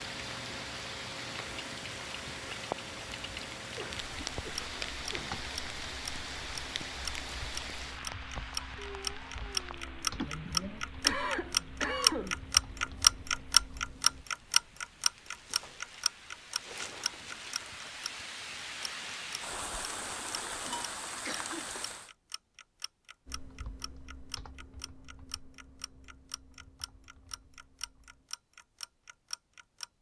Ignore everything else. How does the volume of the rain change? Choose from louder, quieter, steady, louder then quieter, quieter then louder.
quieter then louder.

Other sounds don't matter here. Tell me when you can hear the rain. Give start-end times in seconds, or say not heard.
0.0-22.1.